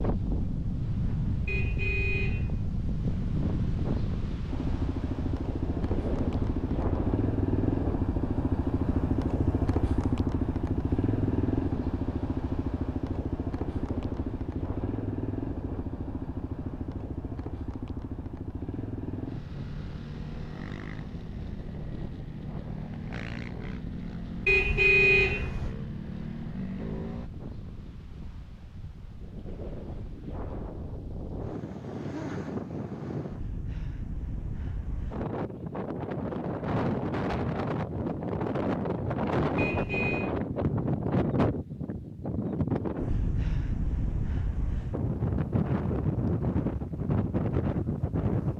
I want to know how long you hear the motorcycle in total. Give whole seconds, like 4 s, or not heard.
23 s.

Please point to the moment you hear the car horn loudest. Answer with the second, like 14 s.
25 s.